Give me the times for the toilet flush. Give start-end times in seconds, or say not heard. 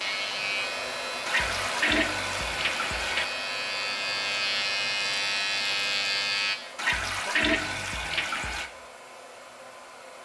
1.2-3.2, 6.8-8.7.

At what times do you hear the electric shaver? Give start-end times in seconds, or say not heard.
0.0-6.6.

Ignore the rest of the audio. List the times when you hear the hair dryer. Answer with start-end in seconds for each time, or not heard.
0.0-10.2.